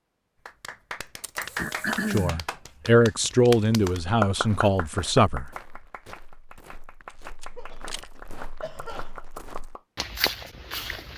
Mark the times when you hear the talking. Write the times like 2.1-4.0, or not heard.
2.1-5.5.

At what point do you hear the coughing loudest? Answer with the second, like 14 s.
2 s.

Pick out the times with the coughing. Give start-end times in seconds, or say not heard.
1.6-3.0, 7.5-9.4.